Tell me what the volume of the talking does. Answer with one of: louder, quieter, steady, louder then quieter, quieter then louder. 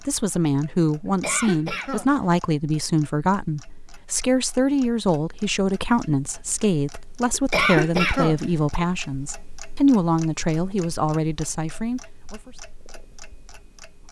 steady.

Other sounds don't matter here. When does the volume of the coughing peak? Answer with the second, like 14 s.
8 s.